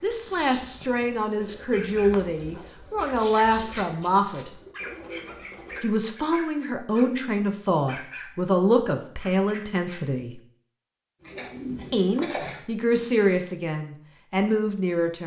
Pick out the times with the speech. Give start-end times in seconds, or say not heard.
0.0-4.5, 5.8-10.4, 11.9-15.2.